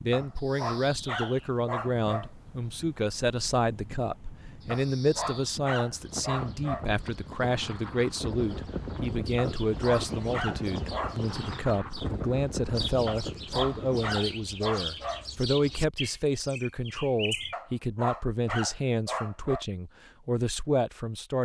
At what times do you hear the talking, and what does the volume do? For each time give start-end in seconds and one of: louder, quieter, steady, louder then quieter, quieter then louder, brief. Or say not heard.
0.0-21.4 steady.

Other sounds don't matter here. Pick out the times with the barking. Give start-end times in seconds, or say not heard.
0.1-2.3, 4.7-6.9, 9.3-11.2, 13.1-15.2, 17.5-19.6.